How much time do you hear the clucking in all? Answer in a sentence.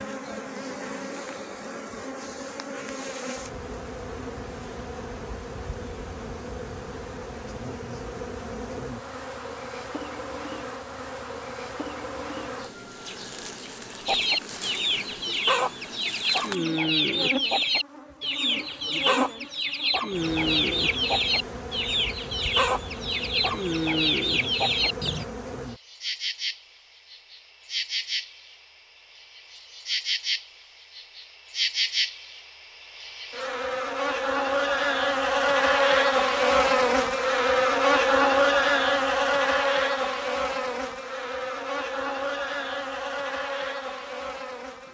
The clucking can be heard for 11 seconds in total.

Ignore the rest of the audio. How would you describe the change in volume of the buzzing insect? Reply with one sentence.
The volume of the buzzing insect goes up.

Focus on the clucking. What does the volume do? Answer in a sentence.
The loudness of the clucking stays about the same.